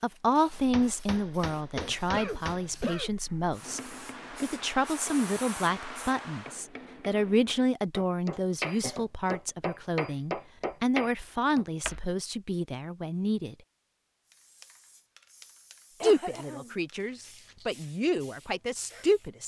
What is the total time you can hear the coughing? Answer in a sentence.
The coughing can be heard for 3 seconds in total.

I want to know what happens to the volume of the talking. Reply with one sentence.
The loudness of the talking stays about the same.